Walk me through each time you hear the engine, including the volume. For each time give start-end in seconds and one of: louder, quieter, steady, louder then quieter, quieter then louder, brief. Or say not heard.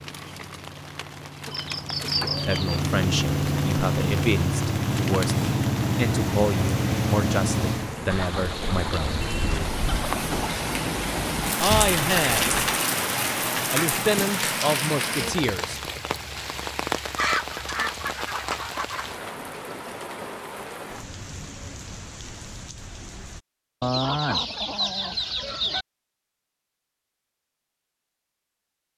0.0-8.0 louder.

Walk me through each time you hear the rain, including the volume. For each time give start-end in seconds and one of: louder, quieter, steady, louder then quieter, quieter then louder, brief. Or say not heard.
0.0-23.4 louder then quieter.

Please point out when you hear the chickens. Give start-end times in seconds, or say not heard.
1.4-2.9, 8.1-10.4, 17.1-19.1, 23.8-25.9.